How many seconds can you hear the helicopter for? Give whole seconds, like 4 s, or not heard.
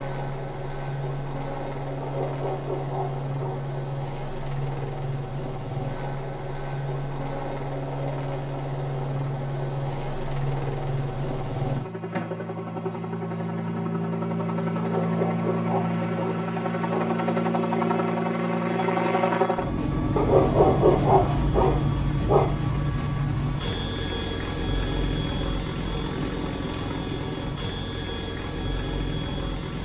30 s.